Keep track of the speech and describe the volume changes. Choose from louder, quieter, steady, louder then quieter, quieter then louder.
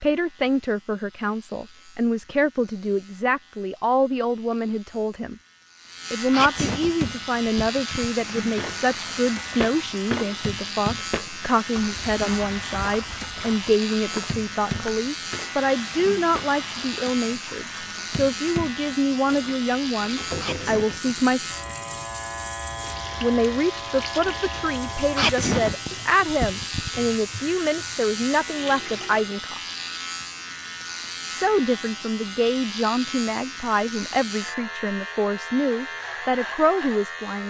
steady.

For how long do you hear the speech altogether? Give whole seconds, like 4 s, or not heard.
33 s.